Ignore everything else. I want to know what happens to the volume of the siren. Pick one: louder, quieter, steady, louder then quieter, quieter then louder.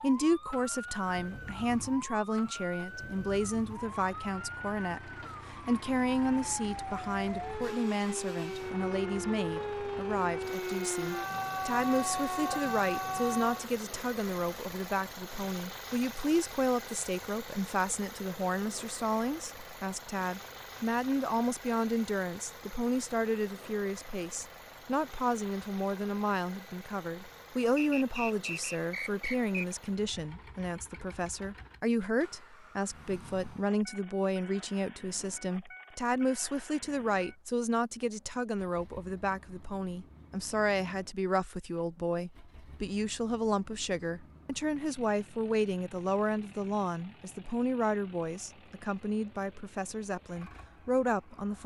louder.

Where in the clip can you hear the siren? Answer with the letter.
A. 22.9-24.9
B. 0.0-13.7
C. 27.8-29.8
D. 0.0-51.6
B.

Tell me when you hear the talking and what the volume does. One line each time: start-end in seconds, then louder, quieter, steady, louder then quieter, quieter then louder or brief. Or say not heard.
0.0-51.6 steady.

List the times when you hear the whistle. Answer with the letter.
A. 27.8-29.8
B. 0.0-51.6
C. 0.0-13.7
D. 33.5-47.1
A.